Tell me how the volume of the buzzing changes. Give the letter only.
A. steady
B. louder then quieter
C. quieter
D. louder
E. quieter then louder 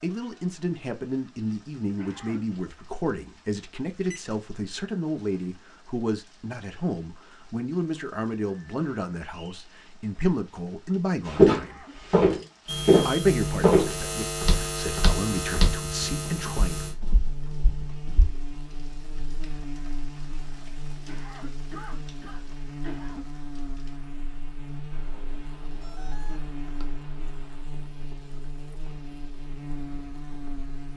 C.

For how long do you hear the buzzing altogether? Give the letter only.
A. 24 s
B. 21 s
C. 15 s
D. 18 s
D.